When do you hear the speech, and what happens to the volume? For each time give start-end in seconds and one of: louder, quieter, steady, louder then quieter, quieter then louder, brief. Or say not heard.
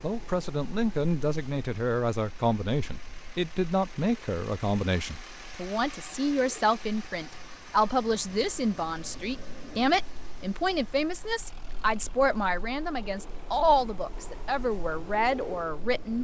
0.0-16.1 steady.